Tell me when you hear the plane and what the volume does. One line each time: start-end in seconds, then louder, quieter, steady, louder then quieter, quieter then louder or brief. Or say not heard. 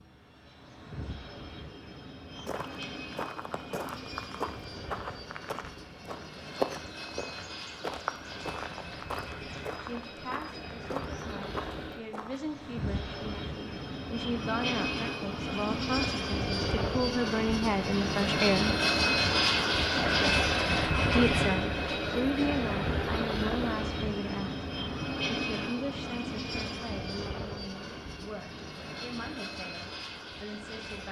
0.0-31.0 louder then quieter.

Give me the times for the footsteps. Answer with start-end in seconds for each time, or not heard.
2.3-12.6.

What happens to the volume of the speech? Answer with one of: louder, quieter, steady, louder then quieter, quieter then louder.
louder then quieter.